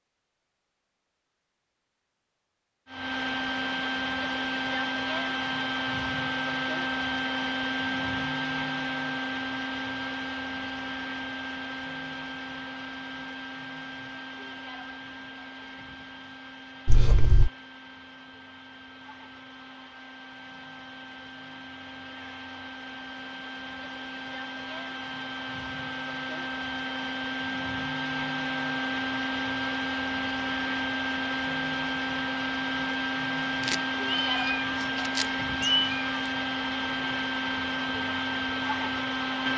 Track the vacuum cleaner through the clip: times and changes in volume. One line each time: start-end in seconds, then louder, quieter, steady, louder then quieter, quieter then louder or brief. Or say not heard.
2.9-39.5 quieter then louder.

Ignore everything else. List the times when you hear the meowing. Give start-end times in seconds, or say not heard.
16.9-17.5, 33.6-36.0.